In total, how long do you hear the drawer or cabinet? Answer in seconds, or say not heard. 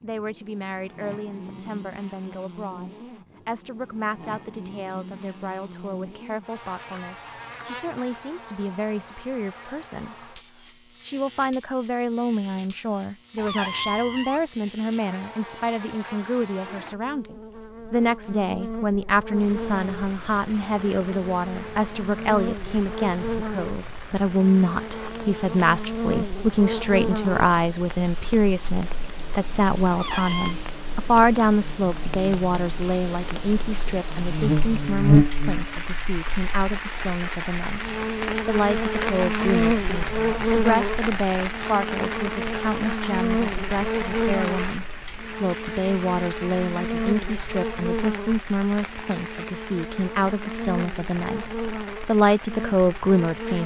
2 s.